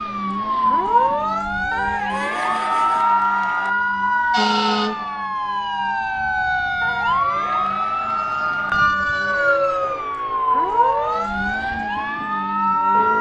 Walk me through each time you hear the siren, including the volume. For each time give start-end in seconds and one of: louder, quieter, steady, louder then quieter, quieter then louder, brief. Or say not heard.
0.0-13.1 steady.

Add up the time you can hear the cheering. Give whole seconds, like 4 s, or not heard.
4 s.